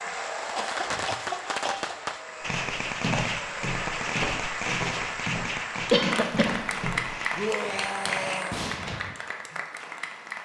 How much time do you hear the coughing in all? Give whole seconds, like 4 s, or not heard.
2 s.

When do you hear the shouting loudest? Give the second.
8 s.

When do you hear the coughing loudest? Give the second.
6 s.